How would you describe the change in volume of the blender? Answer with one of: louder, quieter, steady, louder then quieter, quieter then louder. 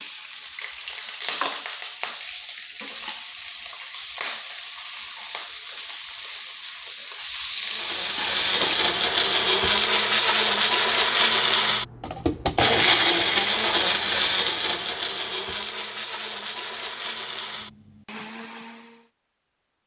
quieter.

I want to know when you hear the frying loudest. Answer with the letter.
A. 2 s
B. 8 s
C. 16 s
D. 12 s
B.